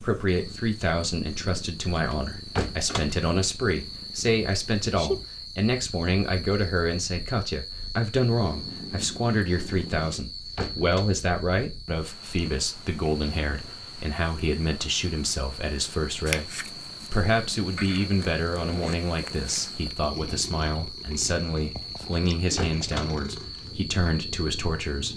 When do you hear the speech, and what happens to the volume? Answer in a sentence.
The speech can be heard from 0.0 to 25.1 s, at a steady volume.